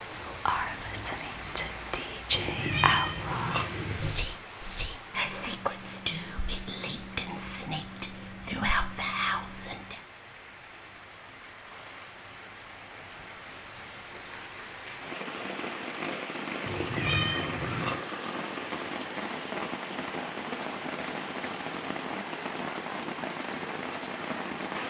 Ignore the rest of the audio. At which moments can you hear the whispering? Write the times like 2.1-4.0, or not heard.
0.2-10.0.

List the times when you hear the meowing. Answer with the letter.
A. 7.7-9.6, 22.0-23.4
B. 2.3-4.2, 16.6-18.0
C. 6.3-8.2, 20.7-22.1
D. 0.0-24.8
B.